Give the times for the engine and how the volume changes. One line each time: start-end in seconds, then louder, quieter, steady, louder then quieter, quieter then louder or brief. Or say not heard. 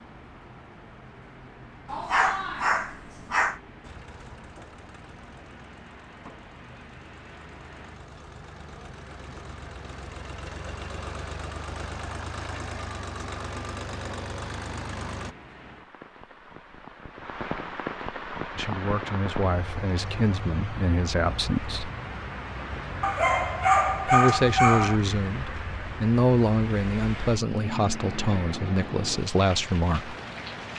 3.8-15.3 louder.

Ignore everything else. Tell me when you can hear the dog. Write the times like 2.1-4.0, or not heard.
1.9-3.6, 23.0-25.0.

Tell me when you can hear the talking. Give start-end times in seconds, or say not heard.
18.6-21.9, 24.1-30.1.